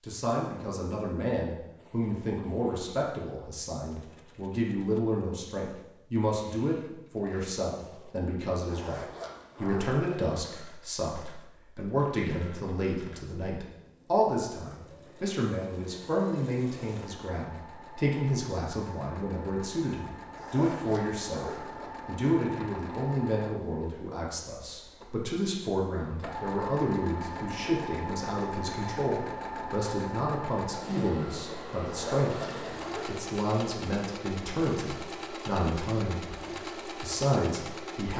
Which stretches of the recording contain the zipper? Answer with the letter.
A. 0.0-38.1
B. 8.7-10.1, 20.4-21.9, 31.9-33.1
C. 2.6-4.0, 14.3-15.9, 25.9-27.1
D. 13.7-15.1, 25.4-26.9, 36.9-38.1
B.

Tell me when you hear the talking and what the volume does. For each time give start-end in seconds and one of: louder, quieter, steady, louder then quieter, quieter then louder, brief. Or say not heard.
0.0-38.1 steady.